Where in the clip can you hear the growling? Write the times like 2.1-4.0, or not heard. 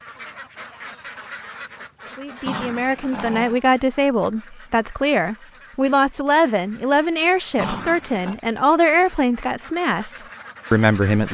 2.5-3.5, 7.5-8.3.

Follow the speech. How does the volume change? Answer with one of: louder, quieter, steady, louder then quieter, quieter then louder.
steady.